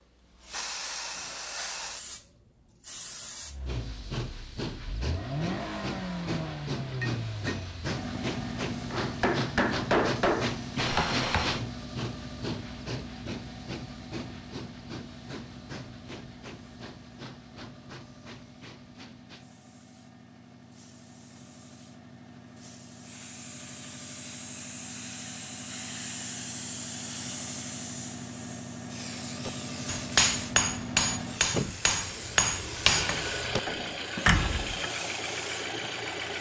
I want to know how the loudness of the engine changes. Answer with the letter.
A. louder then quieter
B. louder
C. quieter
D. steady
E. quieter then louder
E.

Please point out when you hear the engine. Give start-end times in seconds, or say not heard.
3.4-36.3.